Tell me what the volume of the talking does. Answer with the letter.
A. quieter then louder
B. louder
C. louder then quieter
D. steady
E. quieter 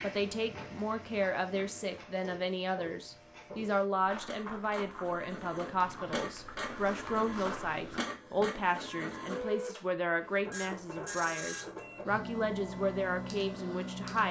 D.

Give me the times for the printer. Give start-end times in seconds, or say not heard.
0.0-14.2.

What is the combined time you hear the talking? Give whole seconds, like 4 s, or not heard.
14 s.